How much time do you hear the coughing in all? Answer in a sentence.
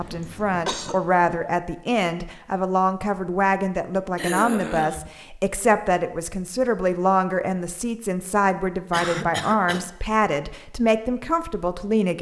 The coughing can be heard for 3 seconds in total.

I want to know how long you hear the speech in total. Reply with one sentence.
The speech can be heard for 12 seconds in total.